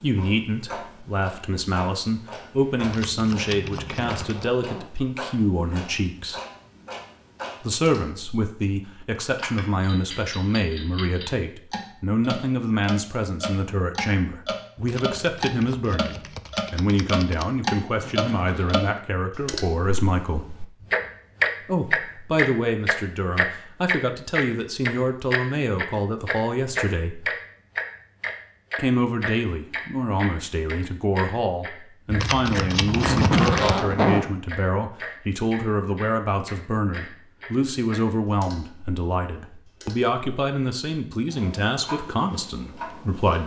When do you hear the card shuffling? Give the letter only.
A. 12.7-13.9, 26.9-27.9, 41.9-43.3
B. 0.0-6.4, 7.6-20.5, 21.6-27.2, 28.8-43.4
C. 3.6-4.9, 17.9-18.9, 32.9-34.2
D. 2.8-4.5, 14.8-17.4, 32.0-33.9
D.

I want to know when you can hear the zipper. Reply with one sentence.
The zipper can be heard from 3.6 to 4.9 s, from 17.9 to 18.9 s and from 32.9 to 34.2 s.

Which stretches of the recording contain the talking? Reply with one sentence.
You can hear the talking from 0.0 to 6.4 s, from 7.6 to 20.5 s, from 21.6 to 27.2 s and from 28.8 to 43.4 s.